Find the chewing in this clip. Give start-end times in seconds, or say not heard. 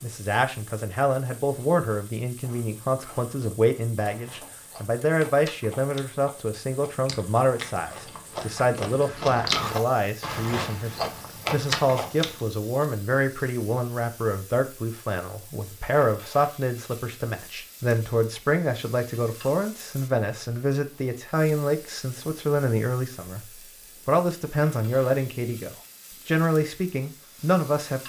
2.5-12.4.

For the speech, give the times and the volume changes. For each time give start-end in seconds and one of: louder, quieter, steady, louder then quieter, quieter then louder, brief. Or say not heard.
0.0-28.0 steady.